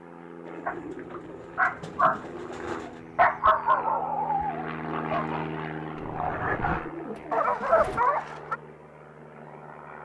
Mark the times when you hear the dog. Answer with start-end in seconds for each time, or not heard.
0.7-8.6.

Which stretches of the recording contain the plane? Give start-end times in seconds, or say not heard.
0.0-10.0.